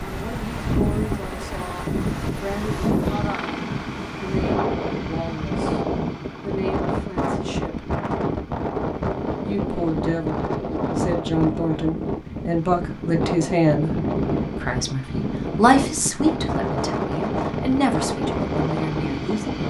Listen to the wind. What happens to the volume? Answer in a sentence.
The loudness of the wind stays about the same.